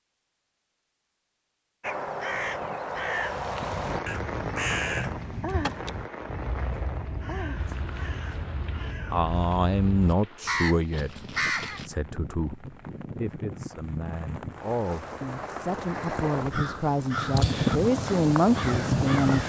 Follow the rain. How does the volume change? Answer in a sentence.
The volume of the rain goes down, then up.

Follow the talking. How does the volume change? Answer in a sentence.
The volume of the talking goes down, then up.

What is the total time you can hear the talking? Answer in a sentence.
The talking can be heard for 10 seconds in total.